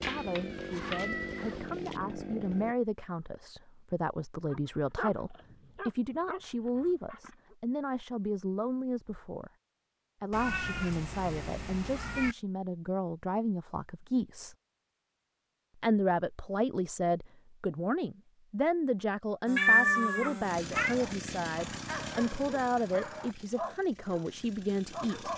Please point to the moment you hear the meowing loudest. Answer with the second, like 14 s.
20 s.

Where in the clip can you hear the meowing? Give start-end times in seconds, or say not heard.
0.0-2.0, 10.3-12.3, 19.6-20.9.